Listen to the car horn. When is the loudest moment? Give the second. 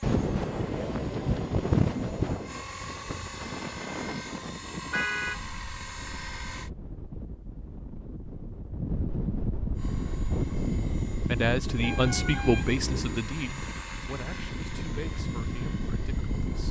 5 s.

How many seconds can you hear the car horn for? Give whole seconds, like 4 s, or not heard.
2 s.